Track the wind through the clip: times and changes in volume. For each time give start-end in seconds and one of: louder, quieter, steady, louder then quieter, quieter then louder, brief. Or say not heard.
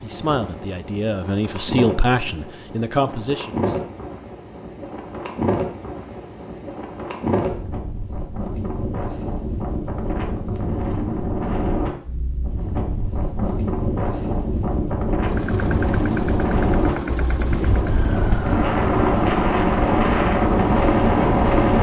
0.0-21.7 louder.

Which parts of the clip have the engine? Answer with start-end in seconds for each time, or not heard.
15.2-21.7.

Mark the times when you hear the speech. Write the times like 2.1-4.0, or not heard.
0.0-3.9.